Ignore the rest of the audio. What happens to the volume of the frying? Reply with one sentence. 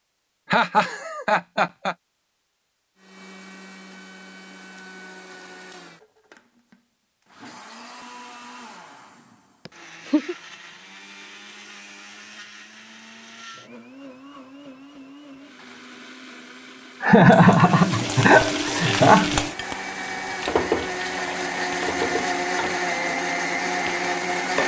The loudness of the frying goes down.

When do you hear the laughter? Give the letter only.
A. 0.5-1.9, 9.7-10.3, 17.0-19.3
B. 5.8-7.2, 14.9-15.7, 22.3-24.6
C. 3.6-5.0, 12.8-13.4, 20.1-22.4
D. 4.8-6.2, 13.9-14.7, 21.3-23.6
A.